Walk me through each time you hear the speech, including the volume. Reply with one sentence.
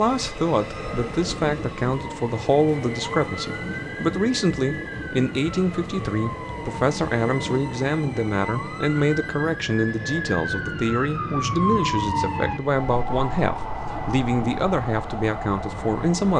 The speech can be heard from 0.0 to 16.3 s, at a steady volume.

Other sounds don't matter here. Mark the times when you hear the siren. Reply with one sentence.
The siren can be heard from 0.0 to 16.3 s.